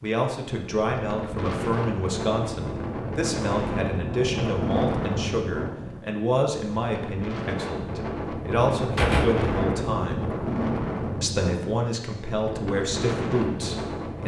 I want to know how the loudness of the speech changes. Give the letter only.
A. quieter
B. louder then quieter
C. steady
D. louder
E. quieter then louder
C.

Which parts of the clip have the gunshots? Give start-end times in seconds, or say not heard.
8.9-9.8.